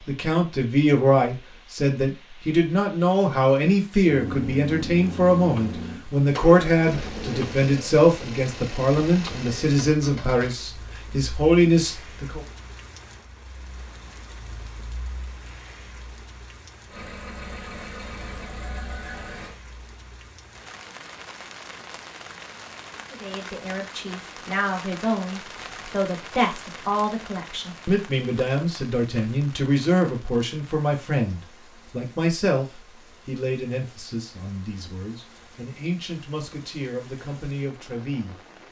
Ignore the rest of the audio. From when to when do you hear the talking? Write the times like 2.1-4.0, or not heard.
0.1-12.4, 23.1-38.4.